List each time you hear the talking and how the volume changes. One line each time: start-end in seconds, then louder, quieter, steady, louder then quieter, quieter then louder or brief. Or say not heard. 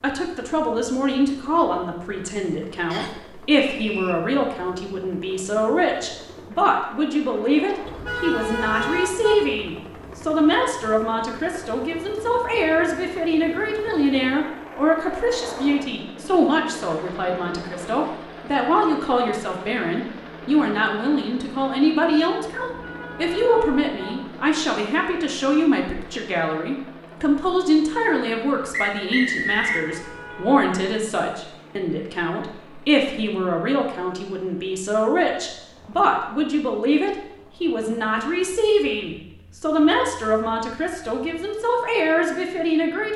0.0-43.1 steady.